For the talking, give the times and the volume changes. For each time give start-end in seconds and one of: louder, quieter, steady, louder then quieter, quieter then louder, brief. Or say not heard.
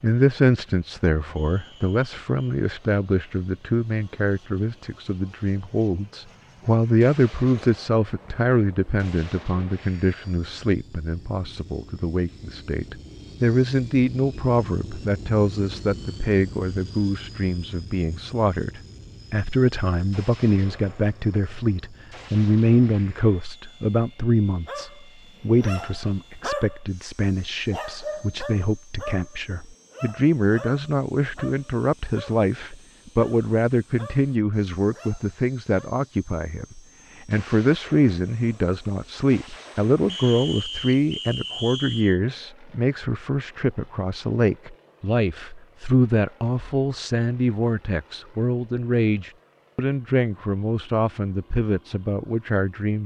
0.0-53.0 steady.